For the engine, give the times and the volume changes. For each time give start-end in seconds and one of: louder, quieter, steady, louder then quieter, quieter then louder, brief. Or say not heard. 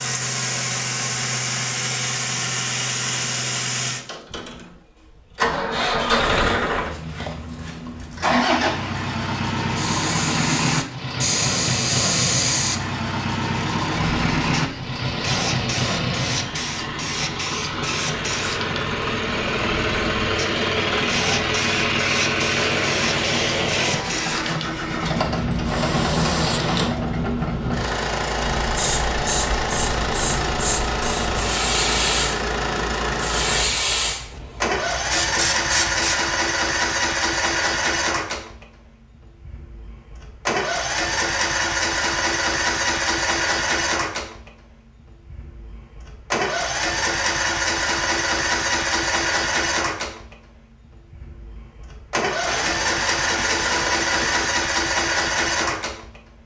0.0-56.4 steady.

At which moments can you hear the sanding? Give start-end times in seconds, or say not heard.
22.6-24.6, 52.5-54.5.